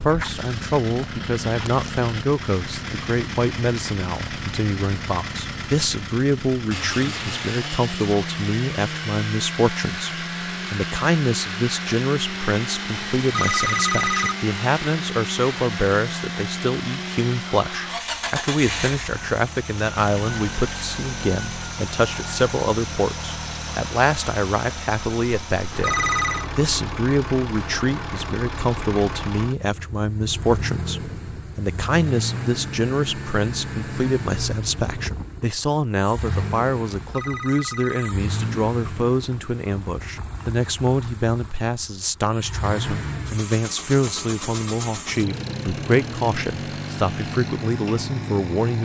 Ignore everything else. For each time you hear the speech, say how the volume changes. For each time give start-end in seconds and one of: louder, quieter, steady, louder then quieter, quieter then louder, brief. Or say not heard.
0.0-48.8 steady.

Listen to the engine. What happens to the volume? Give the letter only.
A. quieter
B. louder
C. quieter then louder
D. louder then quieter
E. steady
E.